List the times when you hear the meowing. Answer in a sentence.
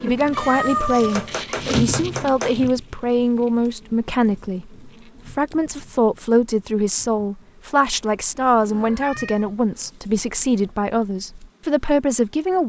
You can hear the meowing from 0.3 to 1.4 s and from 8.1 to 9.9 s.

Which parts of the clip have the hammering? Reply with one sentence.
The hammering can be heard from 1.1 to 2.7 s.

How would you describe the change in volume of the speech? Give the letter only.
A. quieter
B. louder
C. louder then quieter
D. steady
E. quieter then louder
D.